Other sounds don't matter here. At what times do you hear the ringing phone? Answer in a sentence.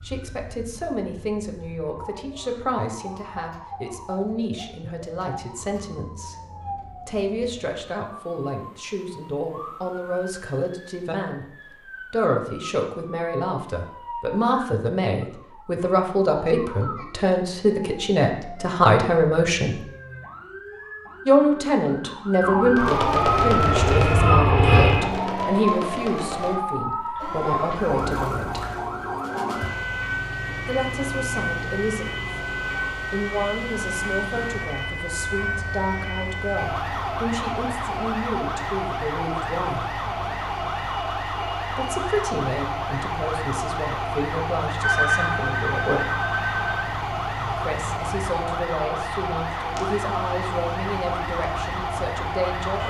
You can hear the ringing phone from 44.8 to 46.9 s.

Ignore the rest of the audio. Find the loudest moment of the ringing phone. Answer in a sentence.
The volume of the ringing phone peaks at 45 seconds.